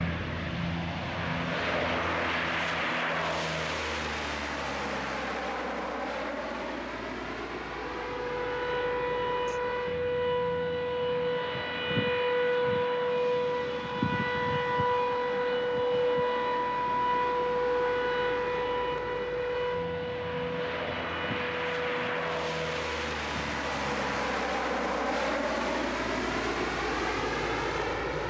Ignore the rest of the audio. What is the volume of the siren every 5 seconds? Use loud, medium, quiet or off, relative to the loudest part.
off, loud, loud, loud, medium, off.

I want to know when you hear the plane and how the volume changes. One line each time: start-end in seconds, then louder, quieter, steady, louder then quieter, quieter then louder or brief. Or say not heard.
0.0-28.2 quieter then louder.